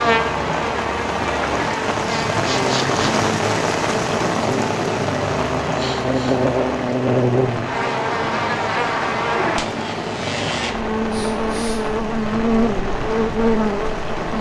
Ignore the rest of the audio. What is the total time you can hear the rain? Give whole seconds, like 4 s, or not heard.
14 s.